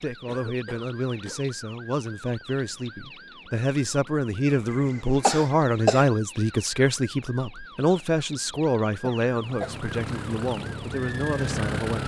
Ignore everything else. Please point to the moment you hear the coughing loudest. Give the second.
6 s.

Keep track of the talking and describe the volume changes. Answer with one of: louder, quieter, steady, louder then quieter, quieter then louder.
louder then quieter.